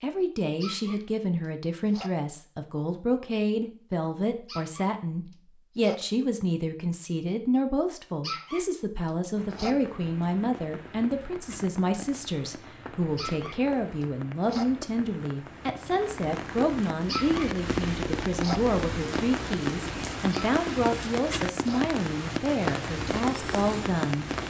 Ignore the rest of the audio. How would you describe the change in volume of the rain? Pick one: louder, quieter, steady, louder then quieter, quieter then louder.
louder.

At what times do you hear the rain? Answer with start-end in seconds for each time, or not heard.
9.3-24.4.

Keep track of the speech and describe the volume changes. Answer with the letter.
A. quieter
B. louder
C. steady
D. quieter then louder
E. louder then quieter
C.